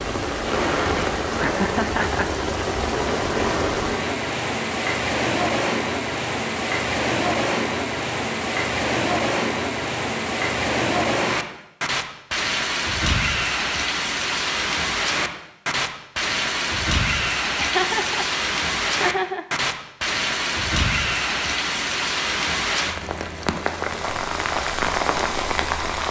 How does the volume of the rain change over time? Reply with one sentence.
The loudness of the rain stays about the same.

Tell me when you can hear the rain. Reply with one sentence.
The rain can be heard from 0.0 to 26.0 s.